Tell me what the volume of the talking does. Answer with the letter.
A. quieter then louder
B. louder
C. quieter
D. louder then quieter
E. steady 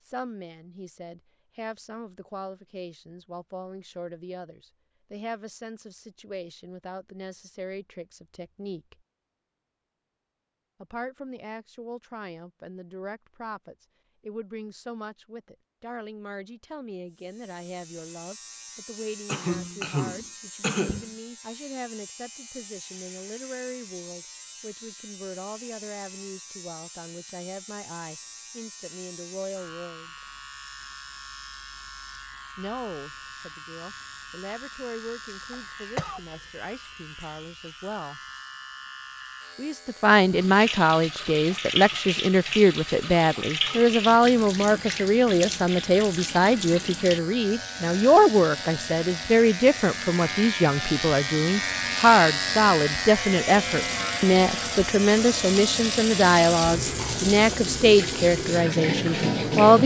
B.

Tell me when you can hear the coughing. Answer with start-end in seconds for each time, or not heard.
19.2-21.1, 35.5-36.2.